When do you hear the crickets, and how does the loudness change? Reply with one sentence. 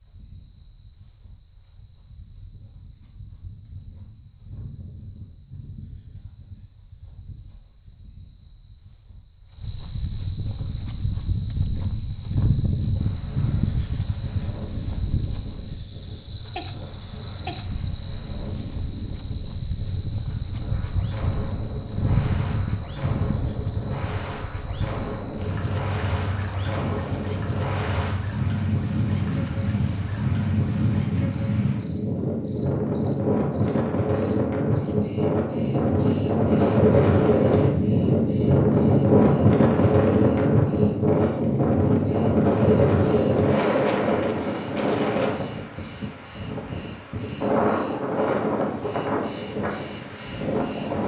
You can hear the crickets from 0.0 to 51.0 s, getting louder then quieter.